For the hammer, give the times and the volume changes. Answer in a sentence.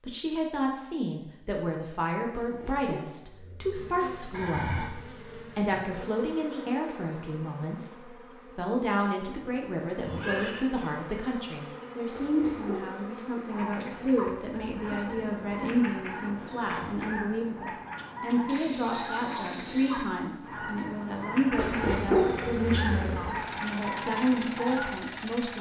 The hammer can't be heard in this clip.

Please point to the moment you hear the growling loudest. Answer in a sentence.
The volume of the growling peaks at 22 seconds.